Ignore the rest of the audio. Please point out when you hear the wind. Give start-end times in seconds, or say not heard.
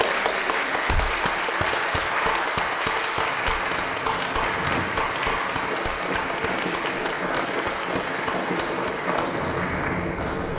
3.1-10.5.